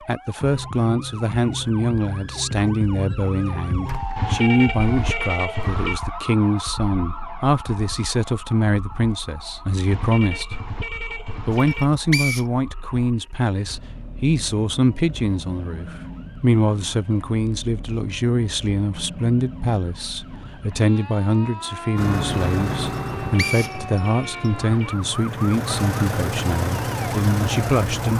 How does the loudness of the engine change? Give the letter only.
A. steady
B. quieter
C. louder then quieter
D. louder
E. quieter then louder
E.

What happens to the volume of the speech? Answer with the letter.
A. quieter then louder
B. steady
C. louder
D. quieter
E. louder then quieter
B.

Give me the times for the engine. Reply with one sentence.
You can hear the engine from 21.9 to 28.1 s.